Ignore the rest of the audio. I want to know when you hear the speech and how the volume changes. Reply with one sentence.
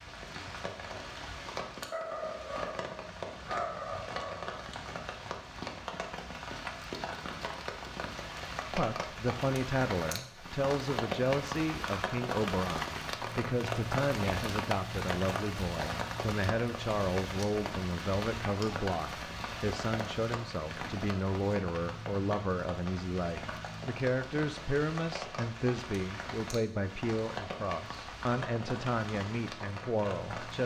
You can hear the speech from 8.7 to 30.6 s, at a steady volume.